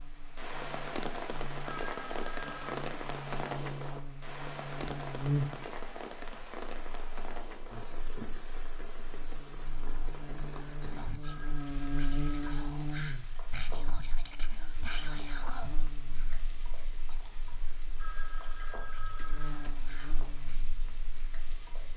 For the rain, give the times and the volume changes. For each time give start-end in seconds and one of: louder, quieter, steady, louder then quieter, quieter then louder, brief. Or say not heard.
0.0-21.9 quieter.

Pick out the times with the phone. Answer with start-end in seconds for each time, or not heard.
1.6-2.8, 11.2-12.7, 17.9-19.8.